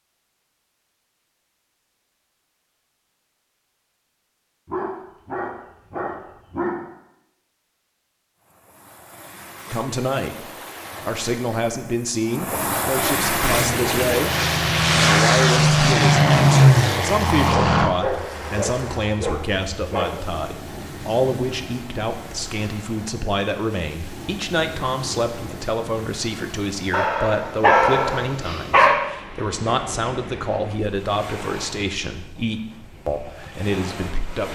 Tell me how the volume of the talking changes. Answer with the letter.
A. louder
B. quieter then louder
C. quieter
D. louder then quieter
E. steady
E.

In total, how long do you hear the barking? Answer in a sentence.
You can hear the barking for 7 seconds altogether.